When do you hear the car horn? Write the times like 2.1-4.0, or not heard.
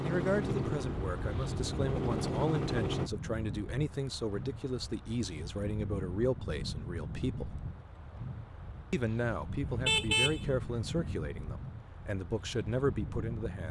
9.6-11.2.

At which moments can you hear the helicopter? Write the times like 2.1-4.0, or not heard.
0.0-3.1.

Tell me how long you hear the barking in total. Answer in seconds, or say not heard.
not heard.